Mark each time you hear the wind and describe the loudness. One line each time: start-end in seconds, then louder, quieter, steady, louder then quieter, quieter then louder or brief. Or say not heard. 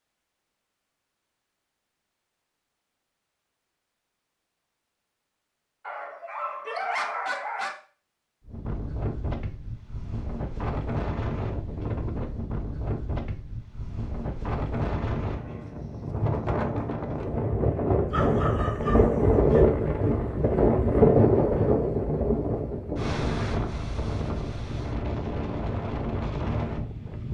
8.4-27.2 louder then quieter.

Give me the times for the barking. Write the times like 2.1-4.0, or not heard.
5.8-7.8, 18.1-19.6.